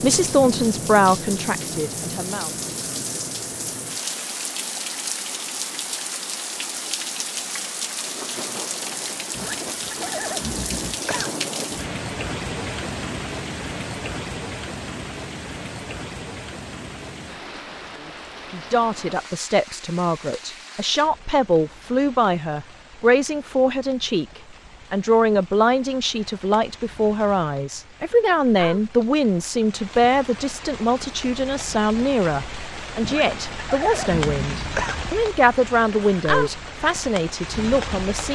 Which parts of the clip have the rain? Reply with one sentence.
You can hear the rain from 0.0 to 38.3 s.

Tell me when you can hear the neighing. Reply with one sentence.
The neighing can be heard from 9.3 to 11.3 s and from 33.0 to 35.0 s.